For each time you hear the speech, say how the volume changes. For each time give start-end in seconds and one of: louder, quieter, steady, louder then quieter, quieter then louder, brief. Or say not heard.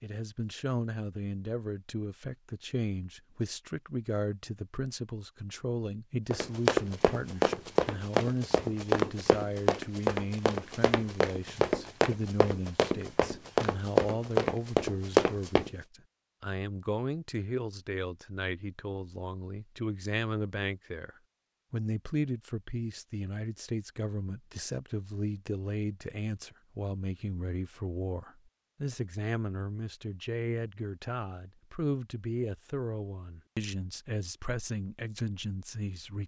0.0-21.1 steady
21.7-36.2 steady.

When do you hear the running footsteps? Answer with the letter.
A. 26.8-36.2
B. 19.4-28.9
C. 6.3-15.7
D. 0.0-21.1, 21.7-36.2
C.